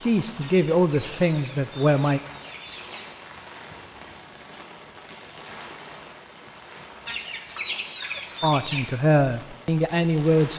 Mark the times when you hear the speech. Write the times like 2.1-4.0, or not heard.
0.0-2.2, 8.4-10.5.